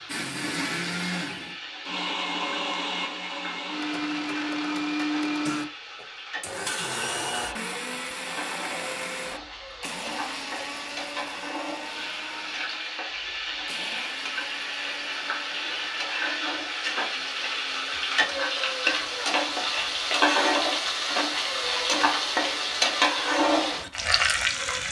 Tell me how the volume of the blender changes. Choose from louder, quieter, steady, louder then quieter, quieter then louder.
quieter.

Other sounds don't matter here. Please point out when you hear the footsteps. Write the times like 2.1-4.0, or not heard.
not heard.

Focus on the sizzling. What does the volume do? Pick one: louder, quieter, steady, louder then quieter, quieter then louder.
louder.